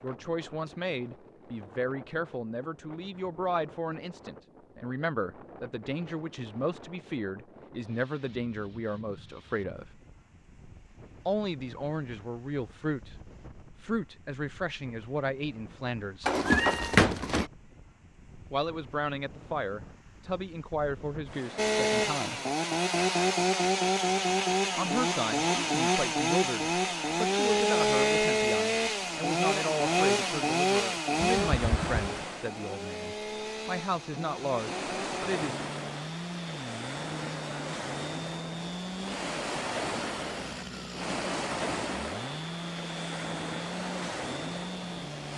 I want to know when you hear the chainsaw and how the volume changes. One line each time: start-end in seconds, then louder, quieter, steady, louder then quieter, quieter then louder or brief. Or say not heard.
21.6-45.3 quieter.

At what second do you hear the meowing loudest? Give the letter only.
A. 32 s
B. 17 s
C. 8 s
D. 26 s
B.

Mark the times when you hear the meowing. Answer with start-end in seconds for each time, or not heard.
16.2-17.4, 31.2-32.2.